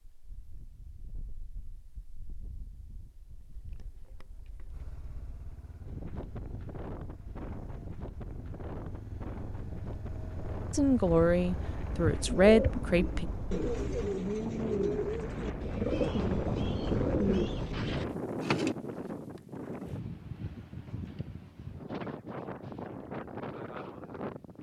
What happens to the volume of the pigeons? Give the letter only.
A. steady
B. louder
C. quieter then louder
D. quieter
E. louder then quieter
A.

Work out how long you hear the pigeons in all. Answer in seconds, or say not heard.
7 s.